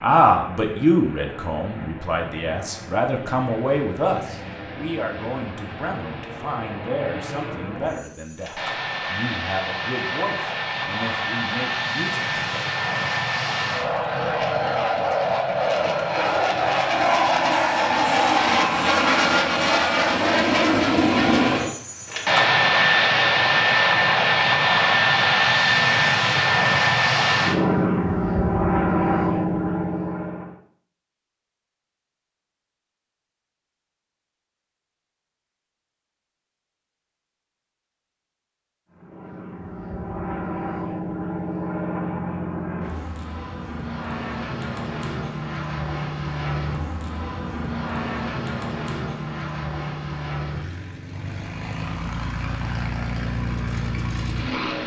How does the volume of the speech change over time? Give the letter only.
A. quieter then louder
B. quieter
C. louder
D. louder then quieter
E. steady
B.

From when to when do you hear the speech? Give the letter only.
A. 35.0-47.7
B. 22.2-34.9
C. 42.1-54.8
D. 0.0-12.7
D.